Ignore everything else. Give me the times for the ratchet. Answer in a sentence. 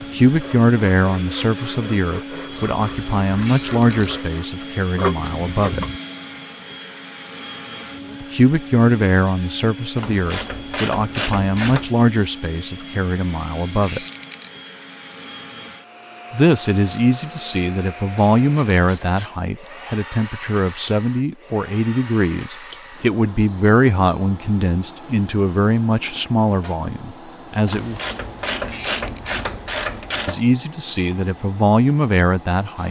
You can hear the ratchet from 2.5 to 4.2 s, from 9.9 to 11.9 s, from 18.1 to 19.3 s and from 27.6 to 30.4 s.